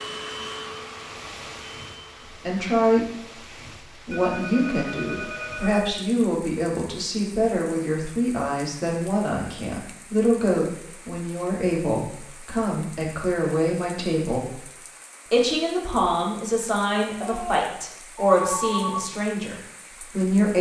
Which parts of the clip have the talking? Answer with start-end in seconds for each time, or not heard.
2.4-14.7, 15.3-20.5.